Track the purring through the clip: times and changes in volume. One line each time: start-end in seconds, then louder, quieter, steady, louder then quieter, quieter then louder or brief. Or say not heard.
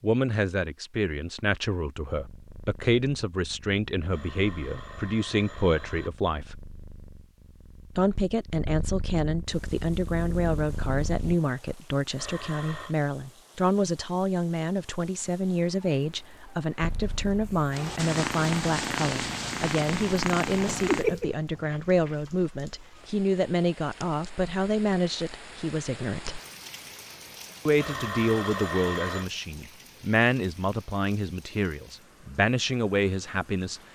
2.1-11.4 louder
16.8-22.1 louder.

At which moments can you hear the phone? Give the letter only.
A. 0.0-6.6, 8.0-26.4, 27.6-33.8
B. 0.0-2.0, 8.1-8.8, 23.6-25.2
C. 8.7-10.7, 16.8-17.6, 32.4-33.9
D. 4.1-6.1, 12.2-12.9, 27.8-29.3
D.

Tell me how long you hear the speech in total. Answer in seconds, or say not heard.
31 s.